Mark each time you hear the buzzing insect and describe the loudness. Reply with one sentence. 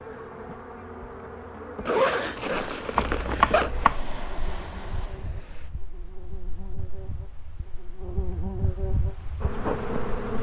You can hear the buzzing insect from 0.0 to 10.3 s, getting quieter then louder.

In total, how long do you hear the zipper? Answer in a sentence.
The zipper can be heard for 2 seconds in total.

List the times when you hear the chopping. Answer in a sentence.
You can hear the chopping from 3.0 to 4.0 s.